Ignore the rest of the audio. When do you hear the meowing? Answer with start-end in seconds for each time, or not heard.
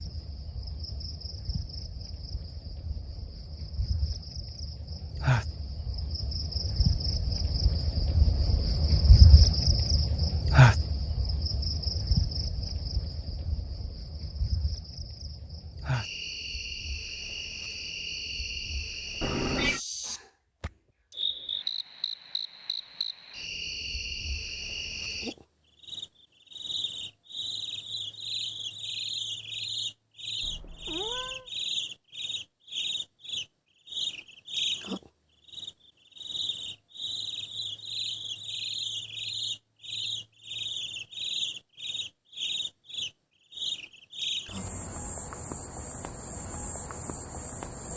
19.2-19.8, 30.4-31.5.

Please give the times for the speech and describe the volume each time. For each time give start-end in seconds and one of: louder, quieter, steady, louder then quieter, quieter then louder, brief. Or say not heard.
not heard.